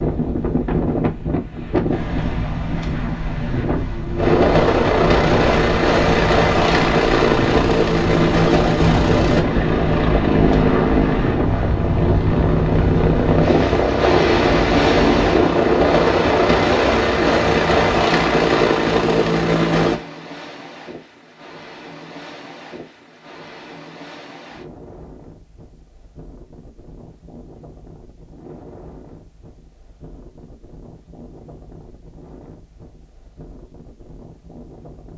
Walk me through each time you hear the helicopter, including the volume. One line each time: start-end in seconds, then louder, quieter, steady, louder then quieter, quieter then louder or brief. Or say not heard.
4.2-20.0 steady.